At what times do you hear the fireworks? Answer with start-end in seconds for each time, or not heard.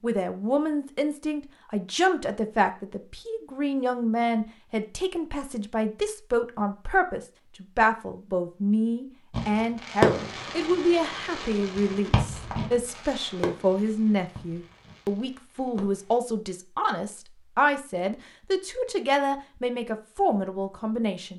9.3-16.2.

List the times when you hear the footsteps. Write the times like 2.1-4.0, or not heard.
not heard.